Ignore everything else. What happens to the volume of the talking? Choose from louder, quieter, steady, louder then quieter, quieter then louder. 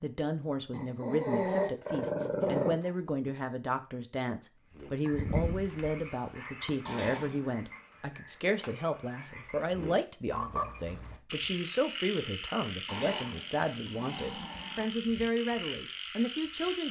steady.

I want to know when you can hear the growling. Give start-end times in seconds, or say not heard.
0.7-2.8, 6.8-7.8, 12.8-14.9.